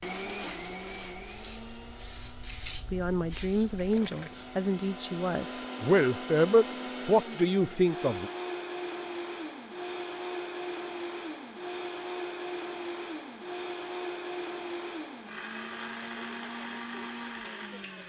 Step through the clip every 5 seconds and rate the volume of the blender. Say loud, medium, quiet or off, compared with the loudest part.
medium, loud, loud, loud.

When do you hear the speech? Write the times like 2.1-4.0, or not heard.
2.9-8.3.